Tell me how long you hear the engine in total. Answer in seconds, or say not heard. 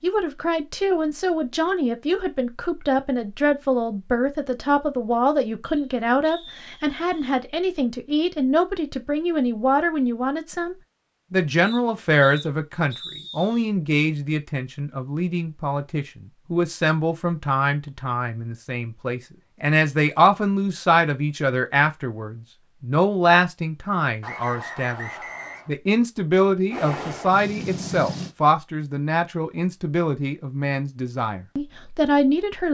2 s.